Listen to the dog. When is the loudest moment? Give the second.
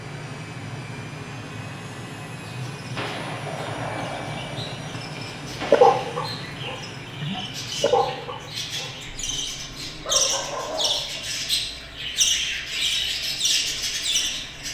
6 s.